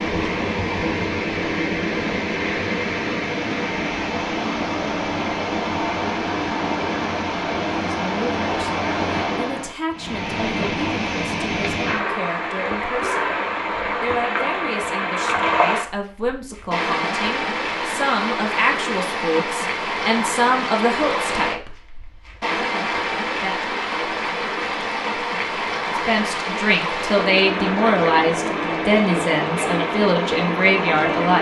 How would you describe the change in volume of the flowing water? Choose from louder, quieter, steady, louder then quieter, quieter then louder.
steady.